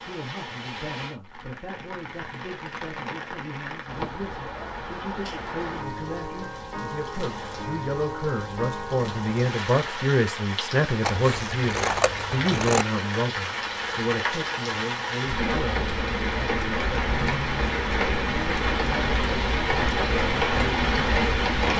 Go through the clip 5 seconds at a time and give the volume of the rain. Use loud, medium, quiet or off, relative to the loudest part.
quiet, medium, medium, loud, loud.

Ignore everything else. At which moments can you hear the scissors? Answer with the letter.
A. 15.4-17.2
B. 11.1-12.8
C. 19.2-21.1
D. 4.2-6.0
B.